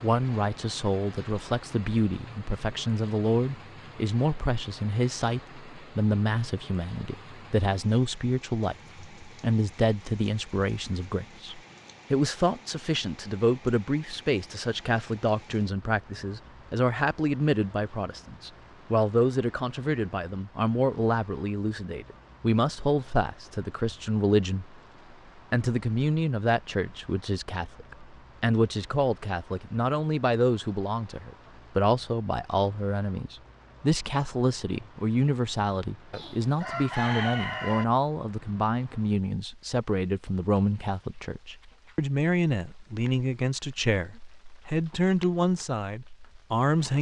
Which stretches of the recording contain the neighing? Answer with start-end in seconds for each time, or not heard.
not heard.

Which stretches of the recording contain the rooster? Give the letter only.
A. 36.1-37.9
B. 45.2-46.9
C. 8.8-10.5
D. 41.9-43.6
A.